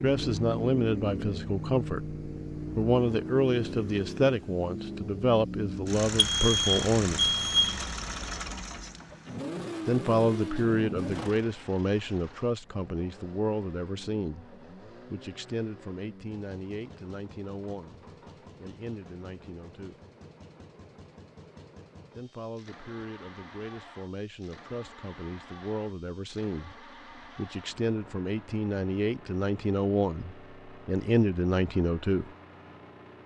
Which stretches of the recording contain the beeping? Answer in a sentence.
You can hear the beeping from 6.0 to 7.8 s.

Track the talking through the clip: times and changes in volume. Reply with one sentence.
You can hear the talking from 0.0 to 7.3 s, at a steady volume; from 9.8 to 20.0 s, getting quieter; and from 22.1 to 32.3 s, getting louder.